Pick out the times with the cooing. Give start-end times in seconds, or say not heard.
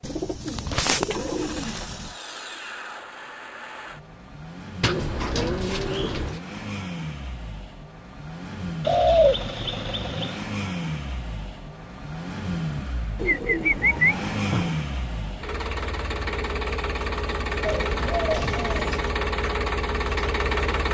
0.1-2.0, 4.8-6.4, 8.8-10.4, 13.2-14.7, 17.6-19.1.